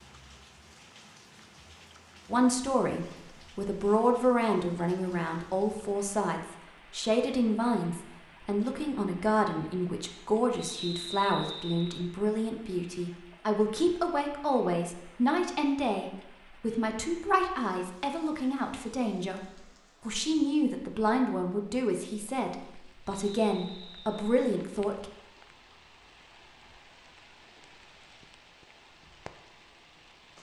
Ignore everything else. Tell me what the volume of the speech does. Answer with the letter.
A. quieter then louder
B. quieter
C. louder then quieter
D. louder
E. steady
E.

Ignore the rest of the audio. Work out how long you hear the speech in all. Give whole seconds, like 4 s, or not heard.
23 s.